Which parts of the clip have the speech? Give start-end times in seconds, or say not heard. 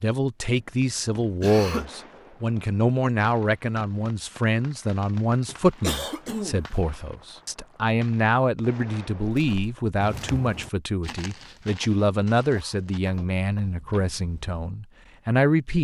0.0-15.8.